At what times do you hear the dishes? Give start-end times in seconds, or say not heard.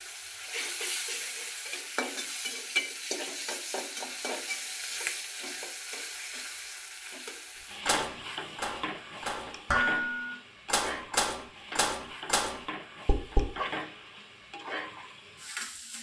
7.8-13.5.